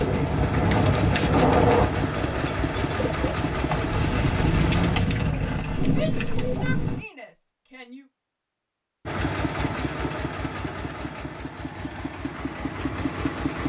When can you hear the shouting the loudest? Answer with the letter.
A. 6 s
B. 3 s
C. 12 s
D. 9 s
A.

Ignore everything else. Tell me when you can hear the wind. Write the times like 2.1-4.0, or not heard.
0.0-7.0.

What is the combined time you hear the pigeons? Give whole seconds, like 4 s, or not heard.
7 s.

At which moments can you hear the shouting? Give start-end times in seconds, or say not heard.
5.8-8.1.